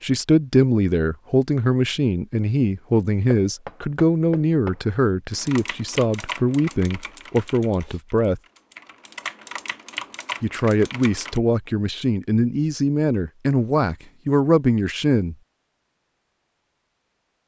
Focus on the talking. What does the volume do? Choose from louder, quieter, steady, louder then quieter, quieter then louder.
steady.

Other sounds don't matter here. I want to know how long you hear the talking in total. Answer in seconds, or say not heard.
13 s.